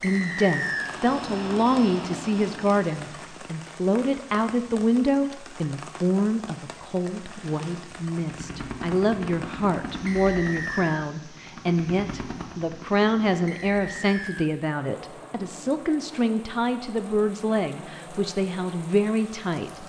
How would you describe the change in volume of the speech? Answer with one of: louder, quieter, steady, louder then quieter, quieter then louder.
steady.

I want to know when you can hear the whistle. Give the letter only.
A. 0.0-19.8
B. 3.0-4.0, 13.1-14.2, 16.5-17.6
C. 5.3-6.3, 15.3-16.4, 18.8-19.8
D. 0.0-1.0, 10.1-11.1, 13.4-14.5
D.